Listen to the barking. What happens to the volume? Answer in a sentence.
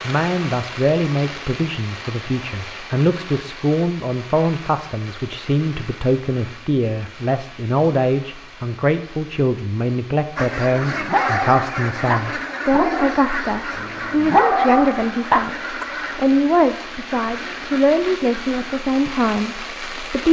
The loudness of the barking goes down, then up.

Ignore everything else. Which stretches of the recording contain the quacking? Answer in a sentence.
You can hear the quacking from 10.3 to 18.9 s.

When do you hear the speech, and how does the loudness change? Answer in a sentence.
You can hear the speech from 0.0 to 20.2 s, at a steady volume.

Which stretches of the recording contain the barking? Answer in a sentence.
The barking can be heard from 10.9 to 15.8 s.